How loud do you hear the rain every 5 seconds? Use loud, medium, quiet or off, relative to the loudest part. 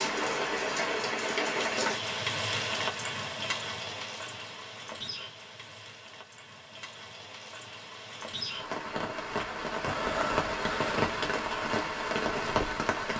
loud, medium, loud.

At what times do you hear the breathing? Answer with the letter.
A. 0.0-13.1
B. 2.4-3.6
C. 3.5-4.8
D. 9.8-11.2
D.